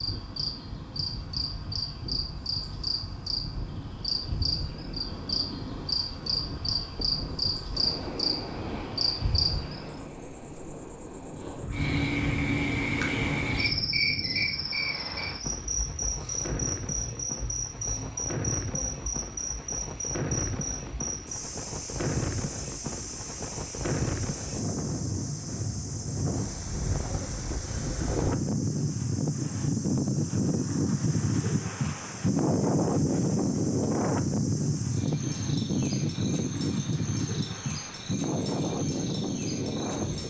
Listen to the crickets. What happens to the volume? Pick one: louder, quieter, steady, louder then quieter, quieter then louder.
quieter.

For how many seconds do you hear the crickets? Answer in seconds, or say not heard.
40 s.